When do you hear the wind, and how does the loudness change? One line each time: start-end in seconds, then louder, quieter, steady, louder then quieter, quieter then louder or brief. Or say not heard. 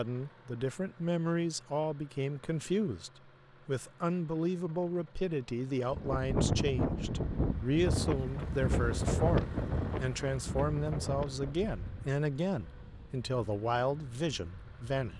5.8-15.1 quieter.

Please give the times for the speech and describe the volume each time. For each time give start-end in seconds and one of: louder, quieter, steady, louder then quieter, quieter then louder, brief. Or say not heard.
0.0-15.1 steady.